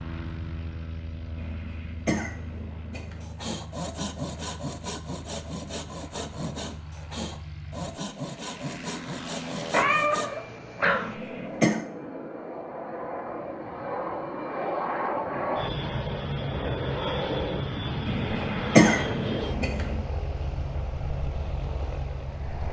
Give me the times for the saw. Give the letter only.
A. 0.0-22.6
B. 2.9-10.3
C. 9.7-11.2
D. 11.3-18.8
B.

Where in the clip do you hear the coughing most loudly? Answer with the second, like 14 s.
19 s.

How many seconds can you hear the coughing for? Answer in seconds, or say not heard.
5 s.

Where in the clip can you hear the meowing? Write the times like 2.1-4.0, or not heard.
9.7-11.2.